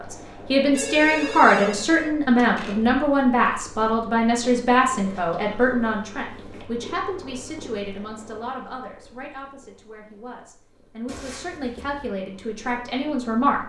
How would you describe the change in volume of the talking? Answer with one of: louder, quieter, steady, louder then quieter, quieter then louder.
quieter then louder.